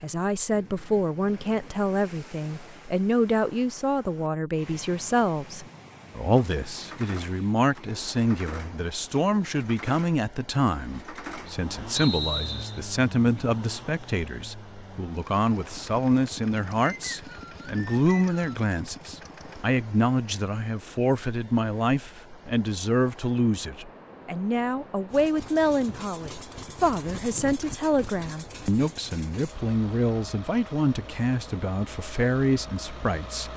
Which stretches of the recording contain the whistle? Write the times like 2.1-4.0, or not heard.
11.9-12.8, 16.8-18.6.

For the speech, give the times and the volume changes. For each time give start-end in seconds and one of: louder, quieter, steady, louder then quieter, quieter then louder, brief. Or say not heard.
0.0-33.5 steady.